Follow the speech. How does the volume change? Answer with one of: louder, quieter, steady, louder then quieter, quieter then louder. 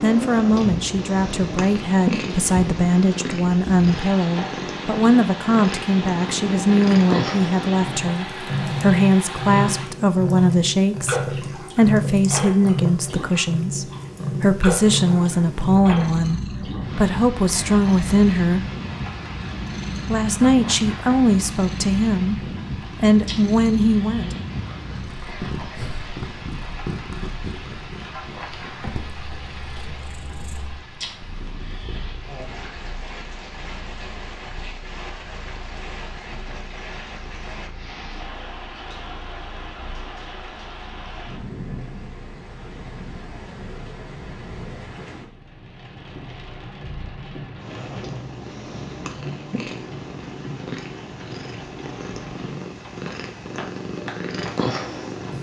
steady.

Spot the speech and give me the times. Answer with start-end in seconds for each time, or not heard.
0.0-18.6, 20.1-24.4.